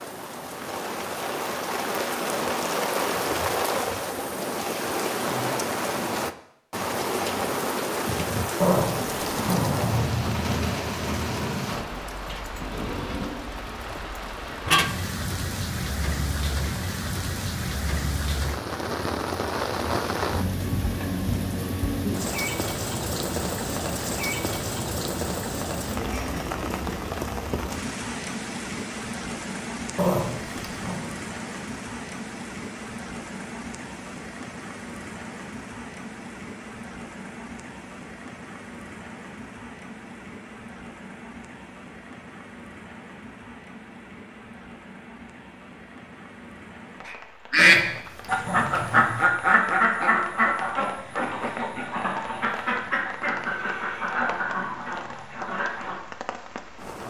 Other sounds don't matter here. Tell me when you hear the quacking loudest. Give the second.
48 s.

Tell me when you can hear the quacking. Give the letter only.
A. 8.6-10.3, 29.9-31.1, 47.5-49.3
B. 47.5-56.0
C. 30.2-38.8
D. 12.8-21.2
B.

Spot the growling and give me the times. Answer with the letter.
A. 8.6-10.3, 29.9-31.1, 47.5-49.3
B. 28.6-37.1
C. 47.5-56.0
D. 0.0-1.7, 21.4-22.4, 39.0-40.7
A.